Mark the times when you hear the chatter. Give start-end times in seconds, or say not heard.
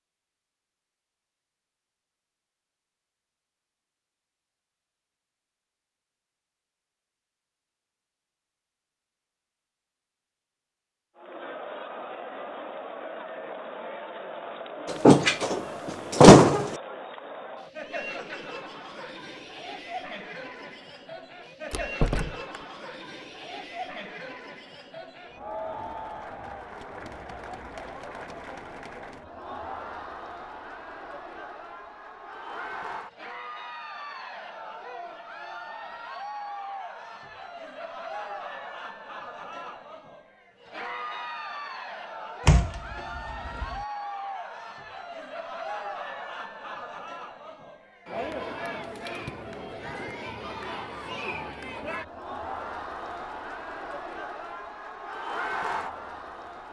11.2-56.6.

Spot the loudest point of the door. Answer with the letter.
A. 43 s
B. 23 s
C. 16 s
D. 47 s
C.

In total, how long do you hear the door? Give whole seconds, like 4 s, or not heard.
4 s.